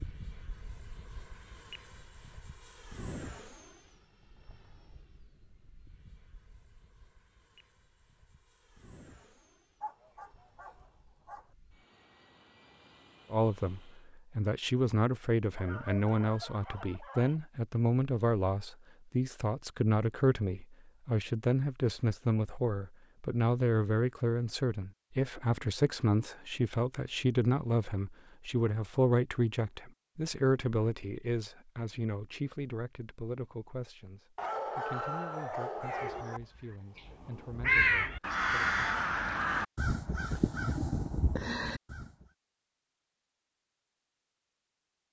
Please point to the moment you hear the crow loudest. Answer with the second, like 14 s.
38 s.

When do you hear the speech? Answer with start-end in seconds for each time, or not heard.
13.3-38.9.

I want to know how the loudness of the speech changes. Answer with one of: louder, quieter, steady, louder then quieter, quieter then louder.
quieter.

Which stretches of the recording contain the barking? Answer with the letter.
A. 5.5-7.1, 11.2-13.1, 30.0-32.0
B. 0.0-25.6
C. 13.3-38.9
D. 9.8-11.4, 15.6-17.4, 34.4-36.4
D.